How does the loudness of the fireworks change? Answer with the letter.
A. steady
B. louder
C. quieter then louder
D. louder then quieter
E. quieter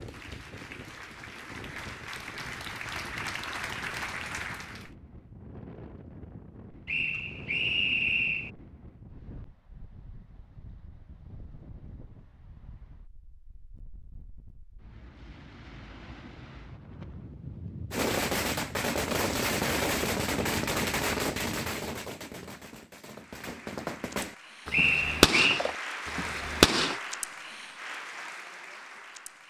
C.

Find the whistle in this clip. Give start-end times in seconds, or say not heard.
6.8-8.5, 24.7-25.6.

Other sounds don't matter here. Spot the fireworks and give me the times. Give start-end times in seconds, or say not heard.
17.9-27.0.